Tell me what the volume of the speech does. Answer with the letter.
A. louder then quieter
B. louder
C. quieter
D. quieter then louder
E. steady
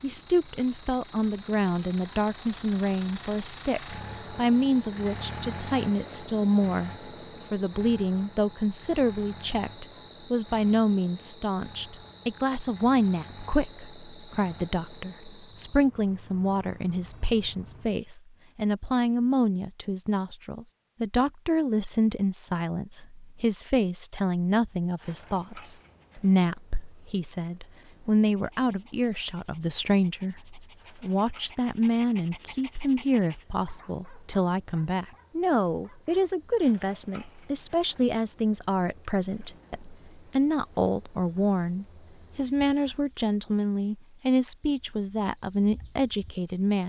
E.